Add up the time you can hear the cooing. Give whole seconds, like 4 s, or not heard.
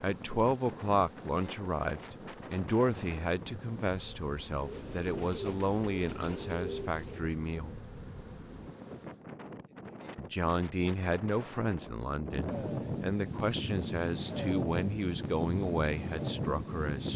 3 s.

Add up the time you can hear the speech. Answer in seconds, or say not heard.
15 s.